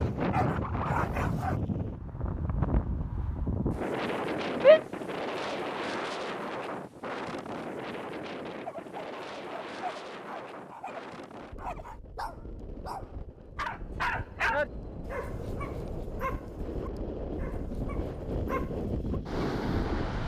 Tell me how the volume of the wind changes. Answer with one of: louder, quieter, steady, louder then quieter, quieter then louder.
quieter then louder.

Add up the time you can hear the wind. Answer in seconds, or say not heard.
20 s.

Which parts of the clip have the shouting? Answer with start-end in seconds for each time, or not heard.
4.5-5.0.